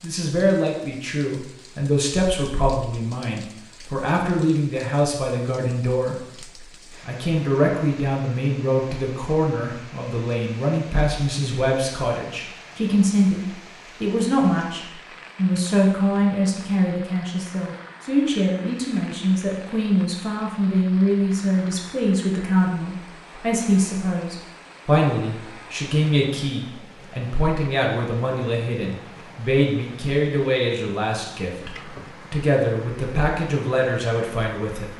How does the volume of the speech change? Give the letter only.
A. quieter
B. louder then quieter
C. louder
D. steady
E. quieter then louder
D.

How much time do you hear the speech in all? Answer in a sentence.
The speech can be heard for 35 seconds in total.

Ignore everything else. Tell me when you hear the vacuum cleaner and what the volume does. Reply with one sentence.
You can't hear the vacuum cleaner here.